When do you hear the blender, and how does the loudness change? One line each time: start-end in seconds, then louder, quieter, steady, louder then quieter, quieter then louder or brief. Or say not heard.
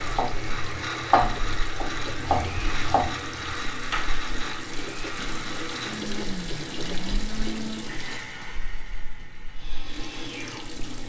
0.0-11.0 quieter.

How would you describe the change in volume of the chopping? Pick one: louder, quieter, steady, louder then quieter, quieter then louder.
louder then quieter.